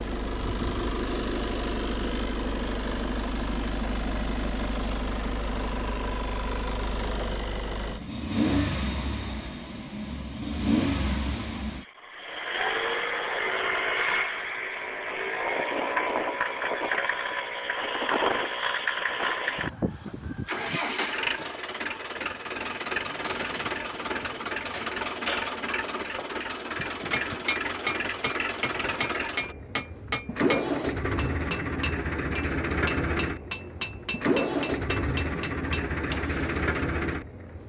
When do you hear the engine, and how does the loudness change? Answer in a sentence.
You can hear the engine from 0.0 to 37.6 s, at a steady volume.